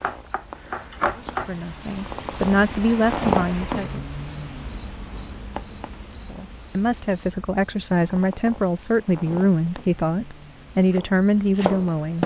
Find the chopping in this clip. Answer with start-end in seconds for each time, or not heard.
0.0-1.5, 10.9-12.2.